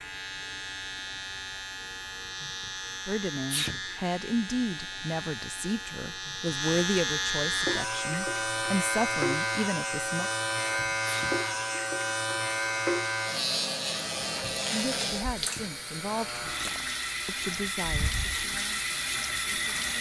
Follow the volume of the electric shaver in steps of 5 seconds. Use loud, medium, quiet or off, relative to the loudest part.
medium, loud, loud, medium.